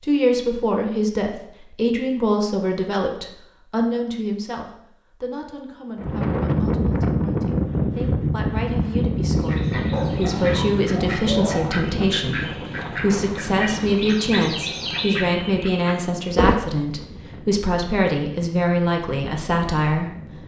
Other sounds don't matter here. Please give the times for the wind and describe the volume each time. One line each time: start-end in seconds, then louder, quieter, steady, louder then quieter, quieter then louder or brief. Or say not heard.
6.0-20.4 quieter.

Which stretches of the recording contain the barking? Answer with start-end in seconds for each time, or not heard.
9.9-11.8.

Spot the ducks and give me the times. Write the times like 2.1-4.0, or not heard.
9.3-16.6.